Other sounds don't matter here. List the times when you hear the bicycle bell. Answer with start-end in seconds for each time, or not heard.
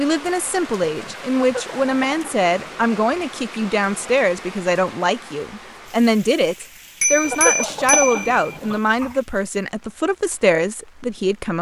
7.0-8.3.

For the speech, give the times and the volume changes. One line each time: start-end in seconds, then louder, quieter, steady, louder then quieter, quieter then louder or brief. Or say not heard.
0.0-11.5 steady.